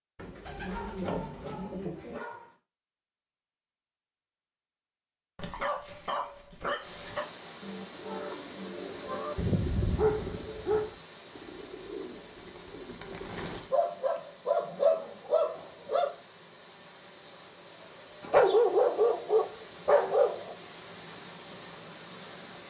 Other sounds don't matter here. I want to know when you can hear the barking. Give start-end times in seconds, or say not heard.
0.7-2.5, 5.3-7.2, 9.3-10.9, 13.7-16.1, 18.2-20.6.